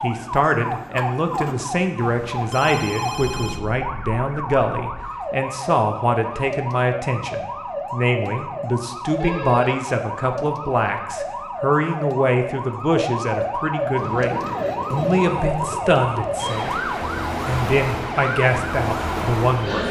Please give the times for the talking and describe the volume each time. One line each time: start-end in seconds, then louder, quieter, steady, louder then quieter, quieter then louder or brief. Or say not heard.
0.0-16.8 steady
17.4-19.8 brief.